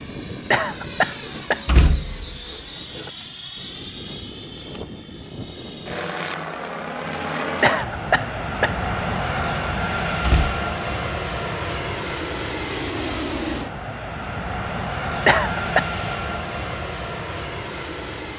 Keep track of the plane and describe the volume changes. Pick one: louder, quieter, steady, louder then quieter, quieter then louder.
louder.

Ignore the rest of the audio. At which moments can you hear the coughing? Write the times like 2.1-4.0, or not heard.
0.5-1.6, 7.6-8.8, 15.2-15.8.